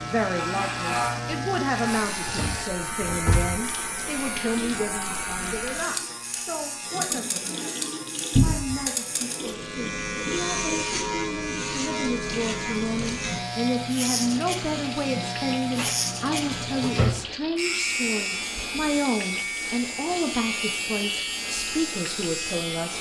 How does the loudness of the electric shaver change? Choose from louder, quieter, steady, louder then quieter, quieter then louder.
steady.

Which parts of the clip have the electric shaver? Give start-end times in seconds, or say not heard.
0.0-22.9.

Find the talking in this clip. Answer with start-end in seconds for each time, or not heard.
0.0-22.9.